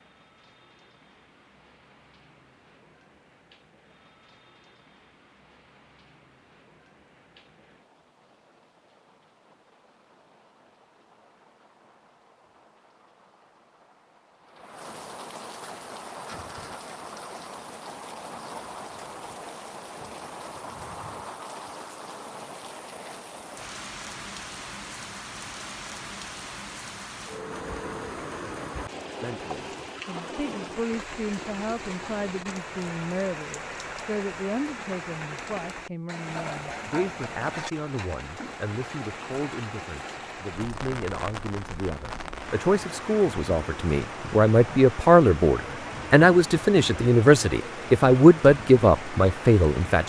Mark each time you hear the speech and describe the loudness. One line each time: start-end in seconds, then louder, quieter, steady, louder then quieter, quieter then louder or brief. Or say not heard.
29.2-50.0 louder.